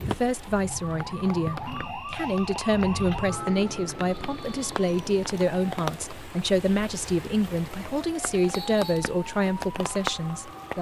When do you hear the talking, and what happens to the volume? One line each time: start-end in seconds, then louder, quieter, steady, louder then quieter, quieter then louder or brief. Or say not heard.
0.1-10.7 steady.